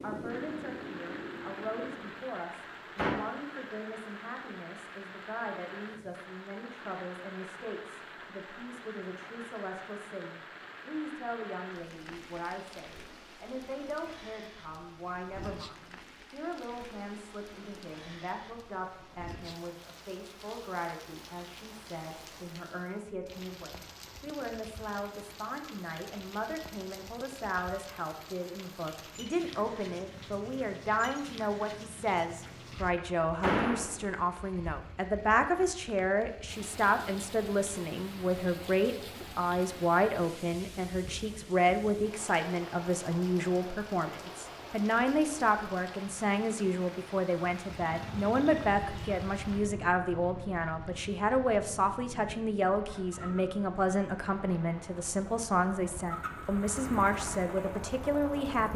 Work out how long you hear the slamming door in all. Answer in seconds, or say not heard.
2 s.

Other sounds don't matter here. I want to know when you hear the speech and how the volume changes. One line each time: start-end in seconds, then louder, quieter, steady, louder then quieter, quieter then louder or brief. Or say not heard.
0.0-58.7 louder.